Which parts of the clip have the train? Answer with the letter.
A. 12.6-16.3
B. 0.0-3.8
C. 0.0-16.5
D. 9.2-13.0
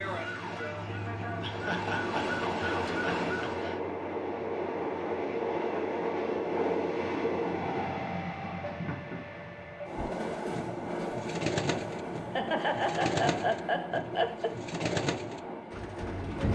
C.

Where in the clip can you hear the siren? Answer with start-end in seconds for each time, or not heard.
0.0-3.8.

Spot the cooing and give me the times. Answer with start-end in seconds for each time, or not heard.
9.9-16.5.